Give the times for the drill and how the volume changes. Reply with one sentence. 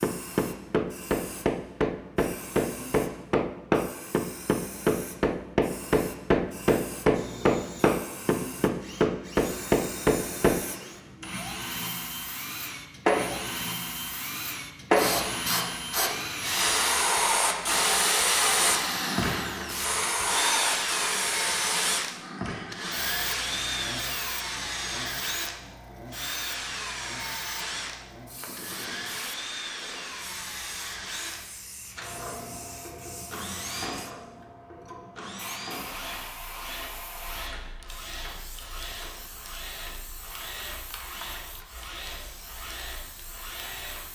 The drill can be heard from 7.1 to 44.1 s, getting louder then quieter.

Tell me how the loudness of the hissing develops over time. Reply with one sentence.
The loudness of the hissing goes up, then down.